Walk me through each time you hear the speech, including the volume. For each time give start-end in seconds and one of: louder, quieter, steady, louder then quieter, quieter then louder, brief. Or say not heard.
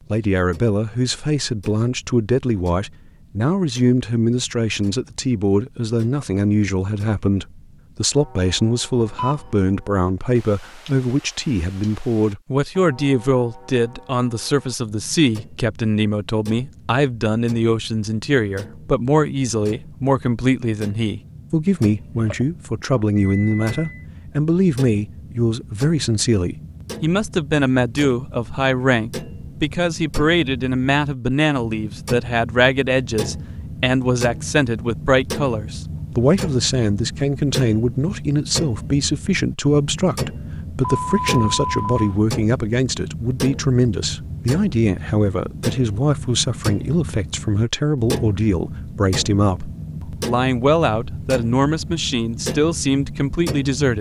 0.1-53.9 steady.